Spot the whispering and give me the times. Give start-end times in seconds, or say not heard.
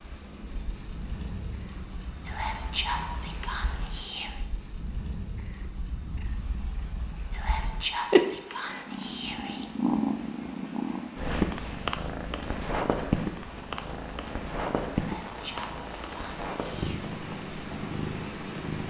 2.2-4.5, 7.3-9.7, 14.9-17.1.